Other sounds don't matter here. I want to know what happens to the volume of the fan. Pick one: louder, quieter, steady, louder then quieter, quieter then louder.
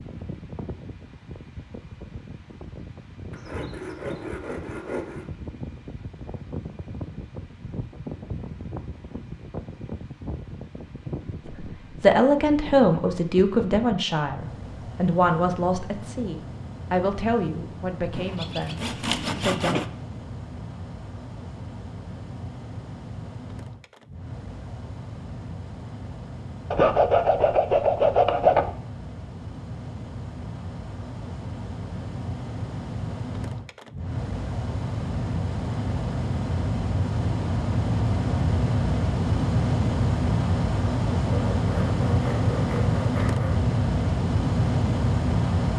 louder.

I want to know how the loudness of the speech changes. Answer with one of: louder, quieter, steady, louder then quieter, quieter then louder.
quieter.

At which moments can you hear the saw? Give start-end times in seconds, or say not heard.
3.3-5.2, 18.1-19.9, 26.7-28.8, 41.2-43.6.